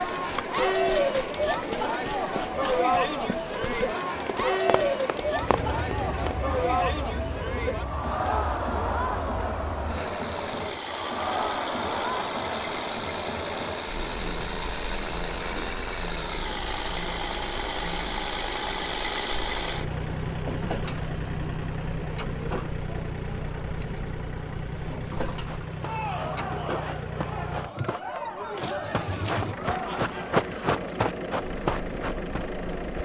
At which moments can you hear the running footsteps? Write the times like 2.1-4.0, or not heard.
0.0-6.4, 25.1-32.8.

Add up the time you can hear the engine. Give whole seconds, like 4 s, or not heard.
28 s.